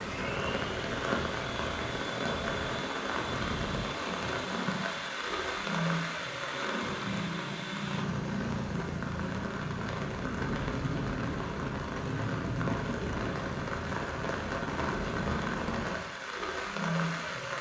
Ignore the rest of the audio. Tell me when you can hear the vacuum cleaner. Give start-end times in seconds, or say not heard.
0.0-8.1.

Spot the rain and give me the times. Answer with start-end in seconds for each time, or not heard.
0.0-17.5.